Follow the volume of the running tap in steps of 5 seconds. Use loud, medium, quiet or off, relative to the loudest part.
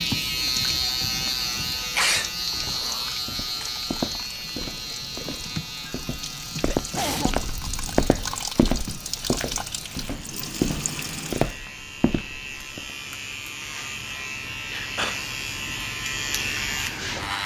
loud, loud, loud, off.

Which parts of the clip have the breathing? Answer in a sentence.
You can't hear the breathing here.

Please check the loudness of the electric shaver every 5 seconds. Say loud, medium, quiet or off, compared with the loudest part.
loud, medium, medium, loud.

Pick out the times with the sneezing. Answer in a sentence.
You can hear the sneezing from 1.9 to 3.6 s, from 6.7 to 8.4 s and from 14.7 to 15.2 s.